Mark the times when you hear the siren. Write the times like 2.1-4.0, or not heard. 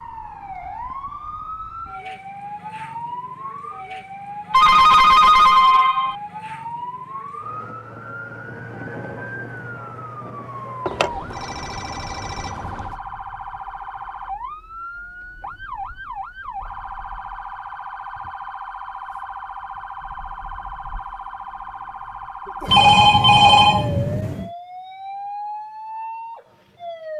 0.0-27.1.